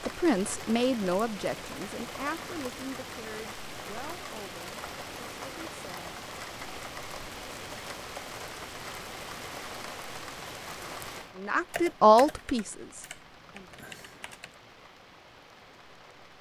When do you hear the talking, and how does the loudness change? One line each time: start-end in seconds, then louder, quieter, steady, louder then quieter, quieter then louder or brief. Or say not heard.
0.0-6.1 quieter
11.3-13.7 brief.